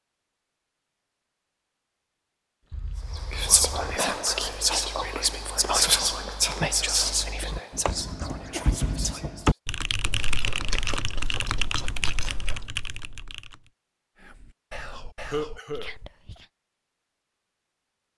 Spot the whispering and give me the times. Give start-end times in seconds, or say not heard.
3.0-9.6, 14.2-16.4.